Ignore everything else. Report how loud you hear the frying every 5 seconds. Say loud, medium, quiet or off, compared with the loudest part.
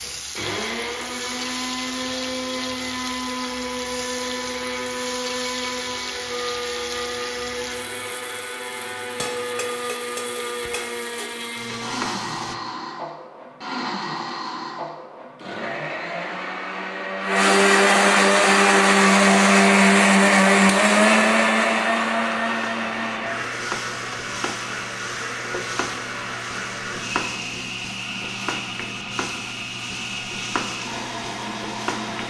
loud, loud, loud, off, loud, loud, loud.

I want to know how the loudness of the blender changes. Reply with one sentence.
The loudness of the blender goes up, then down.